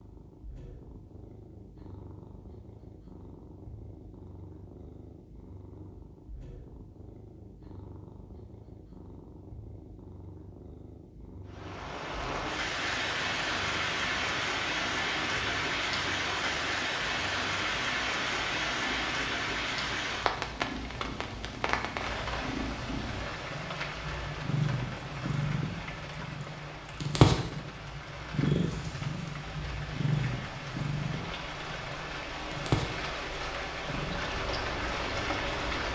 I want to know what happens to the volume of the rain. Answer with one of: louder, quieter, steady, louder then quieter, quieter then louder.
quieter then louder.